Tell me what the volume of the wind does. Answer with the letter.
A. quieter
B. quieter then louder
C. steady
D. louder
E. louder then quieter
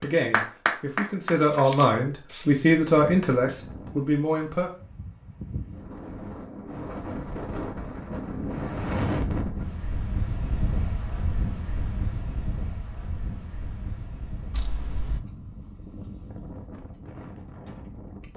E.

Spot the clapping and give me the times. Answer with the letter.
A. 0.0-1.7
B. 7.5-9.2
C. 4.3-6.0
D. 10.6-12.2
A.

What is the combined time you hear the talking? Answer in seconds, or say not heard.
5 s.